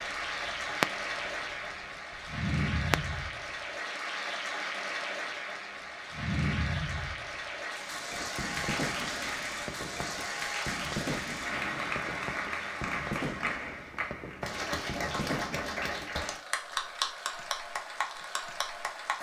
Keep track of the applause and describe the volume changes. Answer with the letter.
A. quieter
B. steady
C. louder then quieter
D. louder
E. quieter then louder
B.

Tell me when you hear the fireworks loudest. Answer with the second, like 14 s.
1 s.